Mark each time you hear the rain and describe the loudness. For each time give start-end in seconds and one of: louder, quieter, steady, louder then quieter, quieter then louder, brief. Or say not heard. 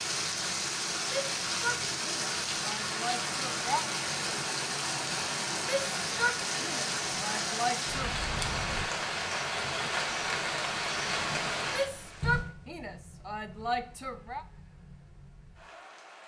0.0-16.2 quieter.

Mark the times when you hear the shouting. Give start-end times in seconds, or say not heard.
1.1-3.9, 5.6-8.2, 11.7-14.4.